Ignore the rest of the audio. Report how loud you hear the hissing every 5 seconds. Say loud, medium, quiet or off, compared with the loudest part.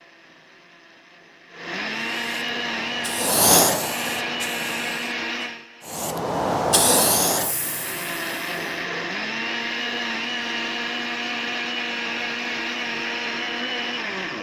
loud, loud, off.